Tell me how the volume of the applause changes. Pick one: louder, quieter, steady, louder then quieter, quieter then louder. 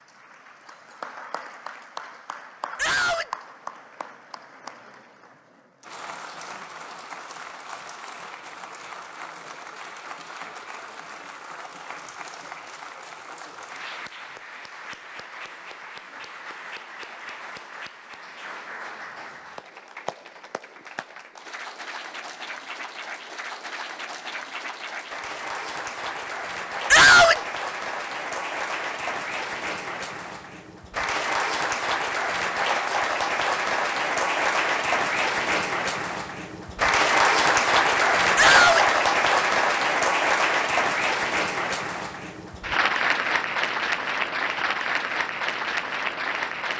louder.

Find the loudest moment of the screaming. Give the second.
27 s.